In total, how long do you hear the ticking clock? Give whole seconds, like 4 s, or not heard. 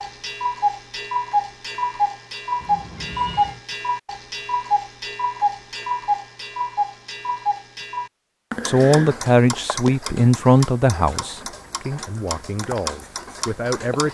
14 s.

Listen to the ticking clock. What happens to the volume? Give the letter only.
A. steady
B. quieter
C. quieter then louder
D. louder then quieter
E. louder
B.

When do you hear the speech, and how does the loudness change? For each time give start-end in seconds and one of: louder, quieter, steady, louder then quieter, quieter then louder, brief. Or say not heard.
8.7-14.1 quieter.